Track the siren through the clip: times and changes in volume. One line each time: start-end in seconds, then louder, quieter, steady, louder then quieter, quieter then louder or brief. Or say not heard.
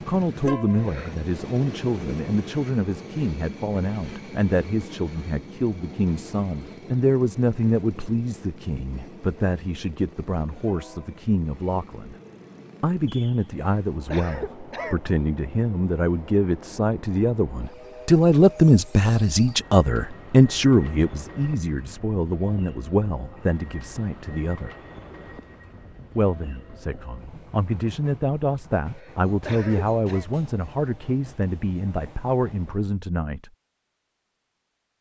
not heard.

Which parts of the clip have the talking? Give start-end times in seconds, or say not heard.
0.1-12.2, 12.8-24.7, 26.1-33.5.